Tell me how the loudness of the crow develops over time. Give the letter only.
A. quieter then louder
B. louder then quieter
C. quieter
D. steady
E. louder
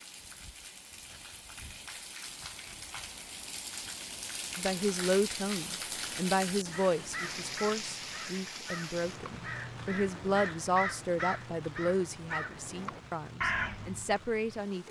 E.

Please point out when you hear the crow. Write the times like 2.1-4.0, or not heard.
6.5-14.2.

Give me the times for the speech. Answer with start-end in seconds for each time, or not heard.
4.5-14.8.